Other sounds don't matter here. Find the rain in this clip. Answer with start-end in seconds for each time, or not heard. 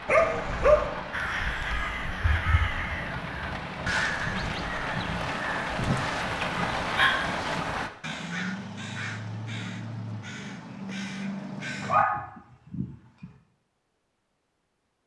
0.0-7.9.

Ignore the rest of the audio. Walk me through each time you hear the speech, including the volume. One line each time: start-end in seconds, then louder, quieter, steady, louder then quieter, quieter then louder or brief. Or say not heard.
not heard.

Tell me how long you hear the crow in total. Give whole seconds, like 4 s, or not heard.
11 s.